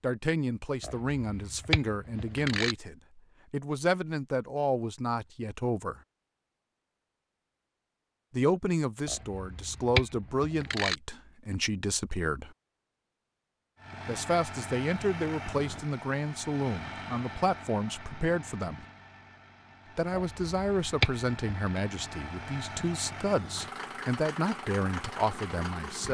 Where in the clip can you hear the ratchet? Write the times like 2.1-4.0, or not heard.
0.8-2.8, 9.1-10.9, 20.1-21.8.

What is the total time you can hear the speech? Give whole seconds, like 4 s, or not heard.
21 s.